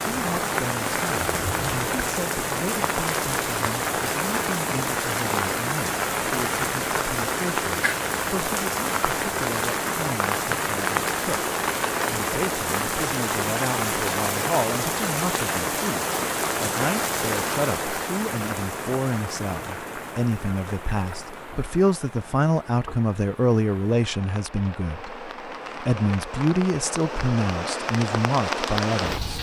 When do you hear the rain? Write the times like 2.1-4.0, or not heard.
0.0-29.3.